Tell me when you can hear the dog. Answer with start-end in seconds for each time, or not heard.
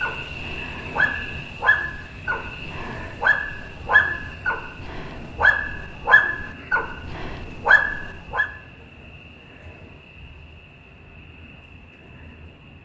0.0-8.5.